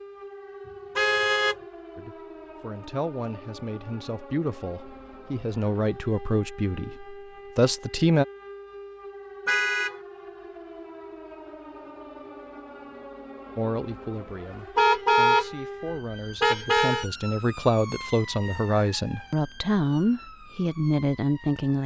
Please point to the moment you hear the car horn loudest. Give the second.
15 s.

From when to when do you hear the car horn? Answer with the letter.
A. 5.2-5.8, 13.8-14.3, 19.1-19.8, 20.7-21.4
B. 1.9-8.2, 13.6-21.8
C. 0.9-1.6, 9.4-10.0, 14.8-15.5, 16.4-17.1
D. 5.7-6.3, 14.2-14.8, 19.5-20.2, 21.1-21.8
C.